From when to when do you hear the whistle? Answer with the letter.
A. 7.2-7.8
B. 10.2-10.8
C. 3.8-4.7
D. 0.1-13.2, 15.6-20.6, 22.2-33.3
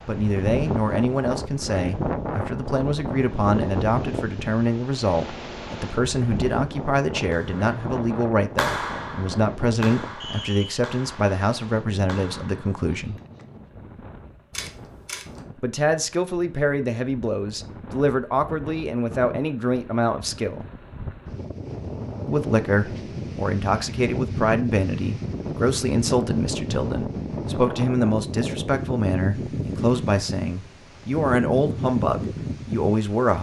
B.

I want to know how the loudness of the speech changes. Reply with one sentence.
The volume of the speech stays about the same.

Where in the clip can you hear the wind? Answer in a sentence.
The wind can be heard from 0.0 to 33.3 s.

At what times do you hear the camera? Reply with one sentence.
The camera can be heard from 14.5 to 15.4 s.